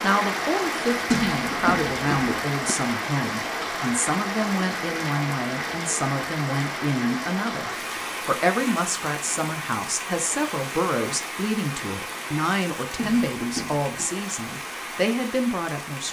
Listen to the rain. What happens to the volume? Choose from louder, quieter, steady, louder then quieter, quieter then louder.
quieter.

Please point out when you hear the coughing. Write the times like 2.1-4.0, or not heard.
1.1-2.8, 12.9-14.1.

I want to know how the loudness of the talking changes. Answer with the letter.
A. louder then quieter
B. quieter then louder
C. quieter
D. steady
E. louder
D.